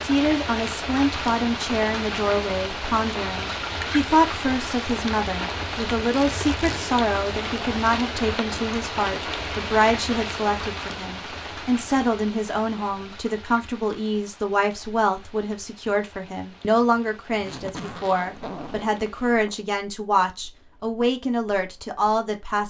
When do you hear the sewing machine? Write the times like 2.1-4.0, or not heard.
not heard.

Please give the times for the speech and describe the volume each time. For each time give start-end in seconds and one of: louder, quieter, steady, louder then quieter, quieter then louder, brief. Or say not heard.
0.0-22.6 steady.